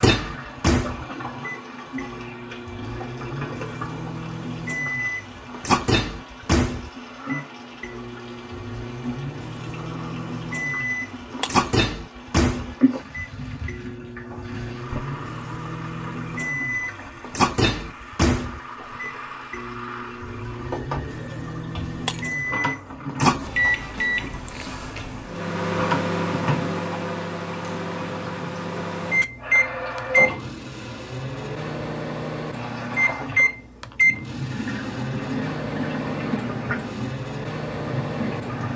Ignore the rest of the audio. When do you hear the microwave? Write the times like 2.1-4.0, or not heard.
0.0-38.7.